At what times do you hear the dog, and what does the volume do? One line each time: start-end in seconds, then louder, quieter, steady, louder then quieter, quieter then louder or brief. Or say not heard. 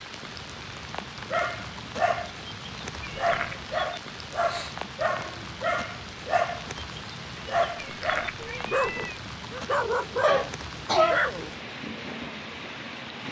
1.3-11.5 steady.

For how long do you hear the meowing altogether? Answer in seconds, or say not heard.
2 s.